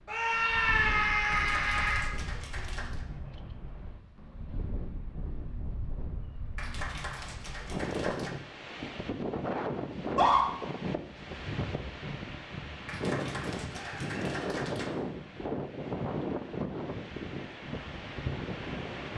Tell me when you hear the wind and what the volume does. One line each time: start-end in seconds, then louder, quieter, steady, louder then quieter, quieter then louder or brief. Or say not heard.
0.0-19.1 louder.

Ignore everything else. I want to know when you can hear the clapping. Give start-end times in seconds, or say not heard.
1.4-3.0, 6.5-8.3, 12.8-14.9.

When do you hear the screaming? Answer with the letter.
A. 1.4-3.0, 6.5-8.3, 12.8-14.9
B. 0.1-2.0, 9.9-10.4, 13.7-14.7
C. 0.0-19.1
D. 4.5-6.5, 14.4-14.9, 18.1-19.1
B.